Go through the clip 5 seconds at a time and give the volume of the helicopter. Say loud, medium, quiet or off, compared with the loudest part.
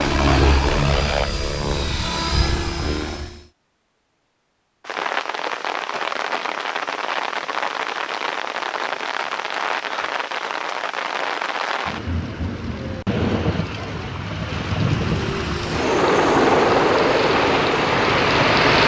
loud, off, off, loud.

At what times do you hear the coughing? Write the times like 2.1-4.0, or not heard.
not heard.